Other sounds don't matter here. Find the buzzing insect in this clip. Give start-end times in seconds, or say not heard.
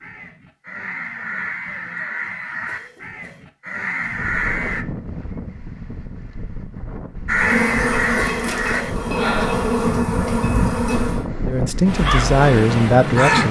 7.3-11.2.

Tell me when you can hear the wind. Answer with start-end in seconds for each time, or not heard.
4.0-13.4.